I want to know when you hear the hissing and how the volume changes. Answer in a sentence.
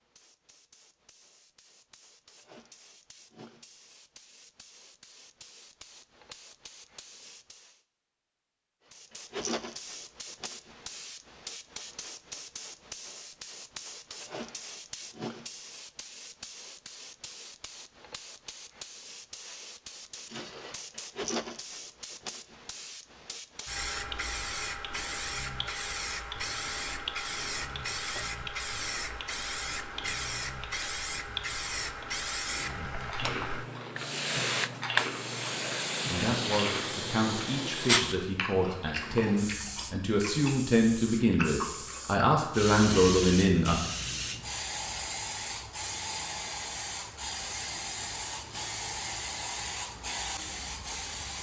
The hissing can be heard from 0.0 to 7.8 s, getting louder; and from 8.9 to 51.3 s, getting louder.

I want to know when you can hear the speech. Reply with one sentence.
You can hear the speech from 36.1 to 43.8 s.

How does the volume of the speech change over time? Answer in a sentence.
The loudness of the speech goes up.